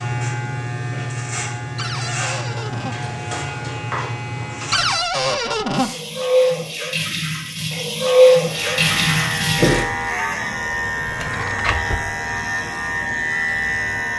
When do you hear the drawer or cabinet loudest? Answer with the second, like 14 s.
5 s.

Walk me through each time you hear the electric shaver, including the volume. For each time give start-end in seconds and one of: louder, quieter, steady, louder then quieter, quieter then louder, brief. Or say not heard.
0.0-5.0 steady
8.4-14.1 steady.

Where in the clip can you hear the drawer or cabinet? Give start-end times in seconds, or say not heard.
1.8-3.0, 4.7-5.9, 10.9-12.1.